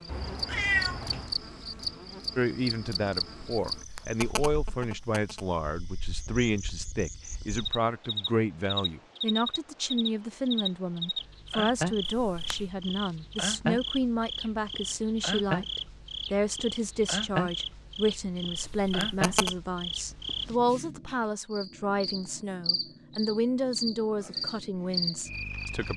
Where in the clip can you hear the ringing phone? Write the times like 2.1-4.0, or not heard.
3.8-5.6, 12.1-12.7, 18.8-19.6.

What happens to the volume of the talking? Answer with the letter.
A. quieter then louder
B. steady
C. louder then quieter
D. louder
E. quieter
B.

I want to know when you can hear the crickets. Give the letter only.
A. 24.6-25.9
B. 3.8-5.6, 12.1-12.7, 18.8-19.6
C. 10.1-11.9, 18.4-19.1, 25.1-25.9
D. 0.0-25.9
D.